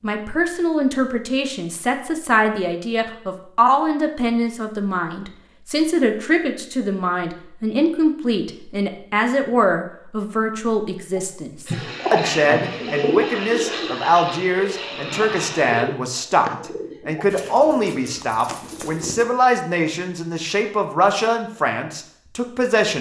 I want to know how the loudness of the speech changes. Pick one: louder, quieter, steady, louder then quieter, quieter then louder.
steady.